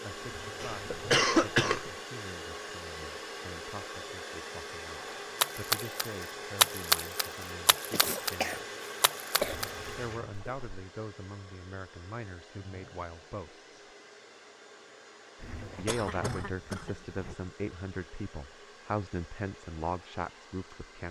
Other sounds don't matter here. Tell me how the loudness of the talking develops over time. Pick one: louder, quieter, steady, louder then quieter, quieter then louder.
louder.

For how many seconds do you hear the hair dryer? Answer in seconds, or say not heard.
21 s.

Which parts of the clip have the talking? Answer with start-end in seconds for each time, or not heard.
0.0-8.7, 9.9-13.7, 15.8-21.0.